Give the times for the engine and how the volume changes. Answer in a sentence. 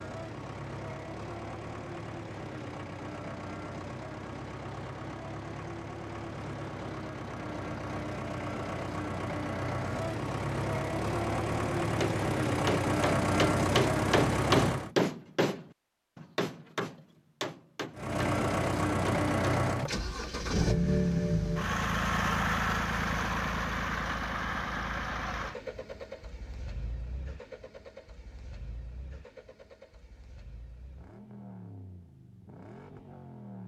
The engine can be heard from 0.0 to 14.9 s, getting louder; and from 17.9 to 33.6 s, getting quieter.